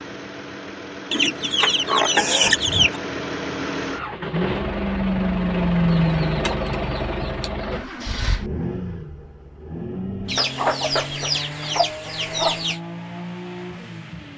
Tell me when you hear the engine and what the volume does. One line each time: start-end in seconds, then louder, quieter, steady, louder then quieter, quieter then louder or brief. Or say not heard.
0.0-14.3 louder then quieter.